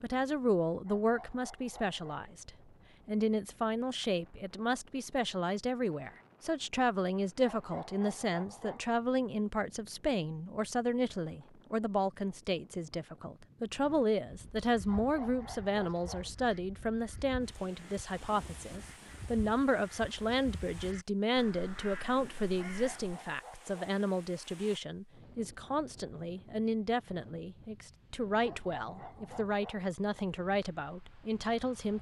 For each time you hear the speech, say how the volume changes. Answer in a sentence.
You can hear the speech from 0.0 to 31.9 s, at a steady volume.